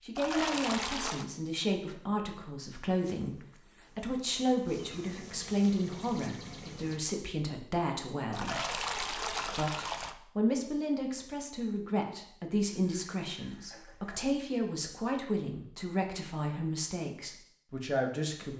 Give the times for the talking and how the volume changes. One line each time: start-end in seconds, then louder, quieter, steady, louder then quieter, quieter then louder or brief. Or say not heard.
0.0-18.5 steady.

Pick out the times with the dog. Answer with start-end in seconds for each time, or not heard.
not heard.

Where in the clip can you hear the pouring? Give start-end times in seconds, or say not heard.
0.1-1.2, 8.3-10.2, 12.7-14.2.